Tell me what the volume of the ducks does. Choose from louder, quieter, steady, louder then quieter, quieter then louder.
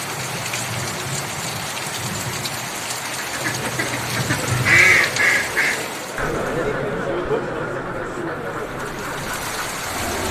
louder then quieter.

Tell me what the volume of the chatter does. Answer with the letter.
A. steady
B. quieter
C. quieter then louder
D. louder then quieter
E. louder
D.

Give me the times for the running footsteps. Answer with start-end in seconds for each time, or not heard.
not heard.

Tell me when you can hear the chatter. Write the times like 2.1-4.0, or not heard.
3.4-10.2.